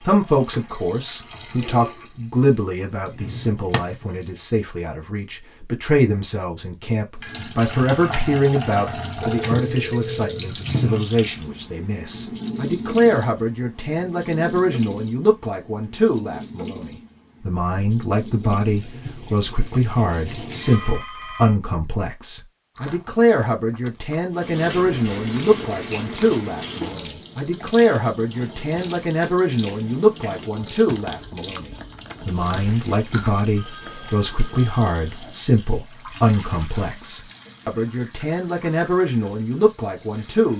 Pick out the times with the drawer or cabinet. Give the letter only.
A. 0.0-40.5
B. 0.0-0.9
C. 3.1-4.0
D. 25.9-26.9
C.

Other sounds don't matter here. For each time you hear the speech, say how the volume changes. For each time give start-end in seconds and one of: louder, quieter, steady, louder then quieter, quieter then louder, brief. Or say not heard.
0.0-40.5 steady.